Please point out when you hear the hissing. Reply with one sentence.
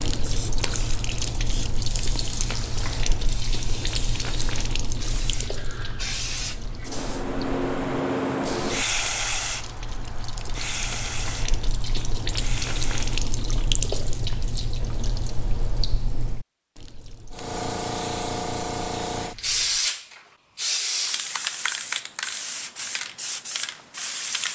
The hissing can be heard from 0.2 to 13.2 s and from 17.3 to 24.4 s.